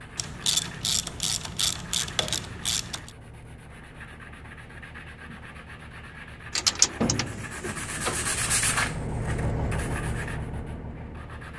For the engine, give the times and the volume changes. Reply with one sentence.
You can hear the engine from 0.0 to 11.5 s, getting louder.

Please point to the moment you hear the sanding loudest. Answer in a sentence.
The volume of the sanding peaks at 9 seconds.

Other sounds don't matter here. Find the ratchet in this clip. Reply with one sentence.
The ratchet can be heard from 0.1 to 3.1 s and from 6.5 to 8.4 s.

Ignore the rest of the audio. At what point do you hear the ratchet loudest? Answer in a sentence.
The volume of the ratchet peaks at 7 seconds.